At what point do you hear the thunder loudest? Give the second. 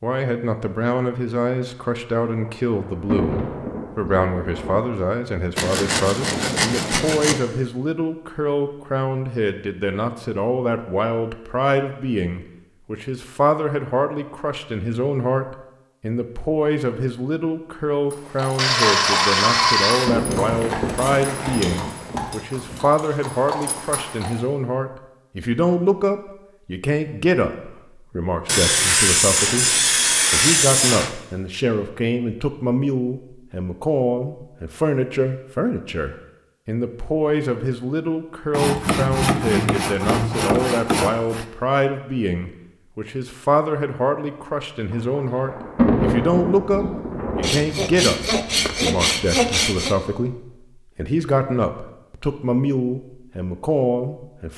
46 s.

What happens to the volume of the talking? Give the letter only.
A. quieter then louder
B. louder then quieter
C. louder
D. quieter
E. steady
E.